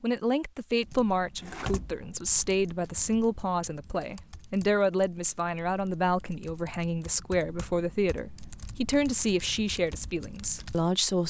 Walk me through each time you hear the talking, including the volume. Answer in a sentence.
The talking can be heard from 0.0 to 11.2 s, at a steady volume.